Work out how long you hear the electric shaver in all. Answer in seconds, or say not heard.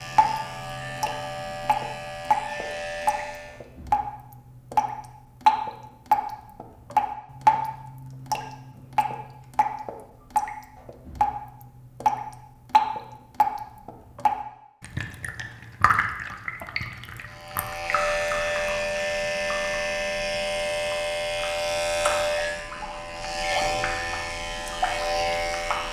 12 s.